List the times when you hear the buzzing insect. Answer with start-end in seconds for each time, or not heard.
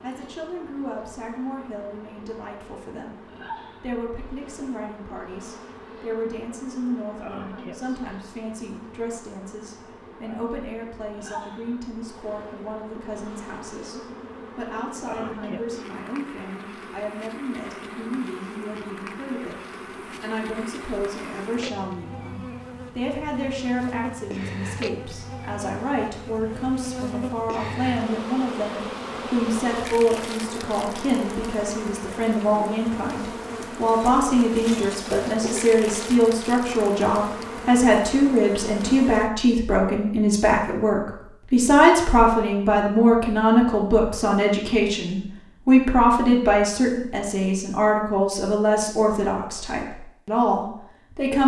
0.0-39.3.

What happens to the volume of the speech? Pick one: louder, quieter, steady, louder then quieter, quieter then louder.
louder.